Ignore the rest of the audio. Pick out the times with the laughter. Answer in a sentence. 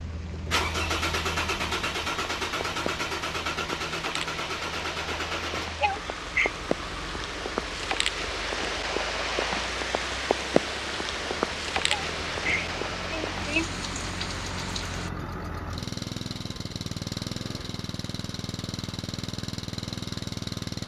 You can hear the laughter from 5.8 to 6.5 s and from 11.9 to 13.7 s.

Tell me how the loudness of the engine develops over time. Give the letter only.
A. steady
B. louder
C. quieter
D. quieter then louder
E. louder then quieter
D.